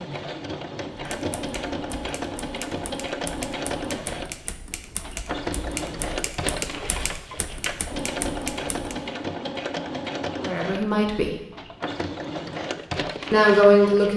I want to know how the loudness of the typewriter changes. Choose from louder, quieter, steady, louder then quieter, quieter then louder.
louder.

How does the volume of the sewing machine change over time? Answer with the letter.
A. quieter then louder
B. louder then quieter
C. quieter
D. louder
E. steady
E.